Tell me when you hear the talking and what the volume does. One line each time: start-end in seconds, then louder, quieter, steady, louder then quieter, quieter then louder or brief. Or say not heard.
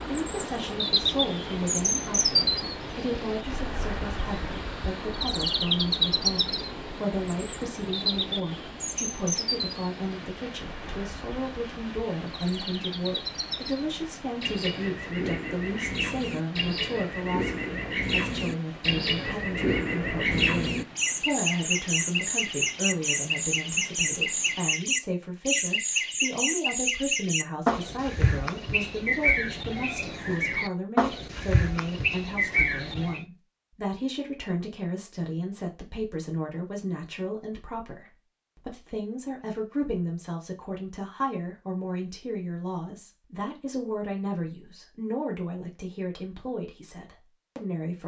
0.0-48.0 steady.